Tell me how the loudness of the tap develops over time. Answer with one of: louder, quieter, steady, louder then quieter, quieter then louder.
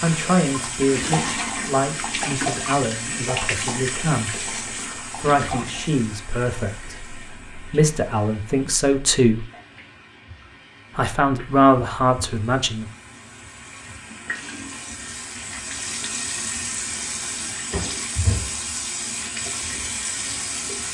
quieter then louder.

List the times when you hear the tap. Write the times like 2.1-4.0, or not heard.
0.0-20.9.